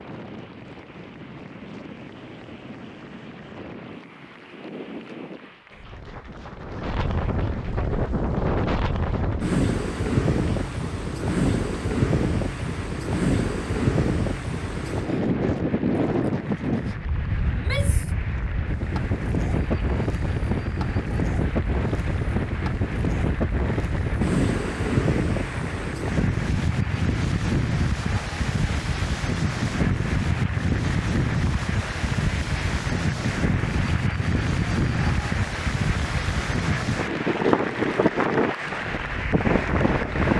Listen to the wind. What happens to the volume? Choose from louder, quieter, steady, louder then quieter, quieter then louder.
louder.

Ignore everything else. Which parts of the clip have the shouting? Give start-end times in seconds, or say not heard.
17.5-18.1.